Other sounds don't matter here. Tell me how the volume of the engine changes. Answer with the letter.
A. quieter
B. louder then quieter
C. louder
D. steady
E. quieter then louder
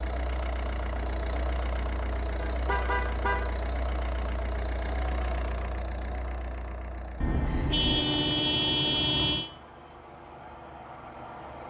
A.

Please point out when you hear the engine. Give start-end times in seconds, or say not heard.
0.0-11.6.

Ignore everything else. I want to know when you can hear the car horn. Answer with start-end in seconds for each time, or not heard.
2.4-3.5, 7.2-9.5.